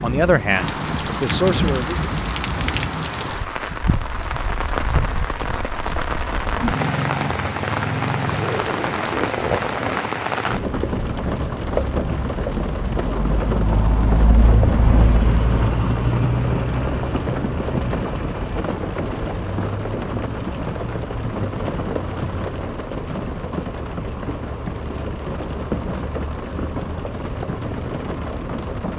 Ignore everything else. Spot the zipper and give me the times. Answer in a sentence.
You can hear the zipper from 8.2 to 10.1 s.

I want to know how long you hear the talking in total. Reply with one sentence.
The talking can be heard for 2 seconds in total.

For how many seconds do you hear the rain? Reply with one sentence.
The rain can be heard for 29 seconds in total.